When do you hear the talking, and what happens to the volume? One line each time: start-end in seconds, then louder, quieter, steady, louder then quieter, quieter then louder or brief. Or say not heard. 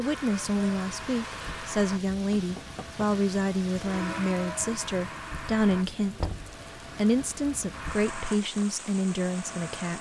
0.0-9.9 steady.